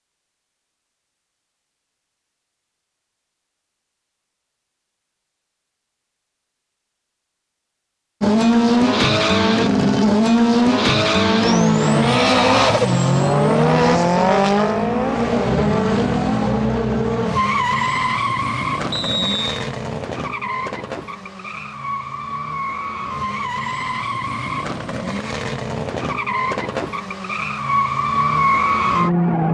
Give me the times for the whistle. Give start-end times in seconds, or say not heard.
18.9-19.6.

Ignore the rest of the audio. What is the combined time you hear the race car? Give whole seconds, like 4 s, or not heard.
21 s.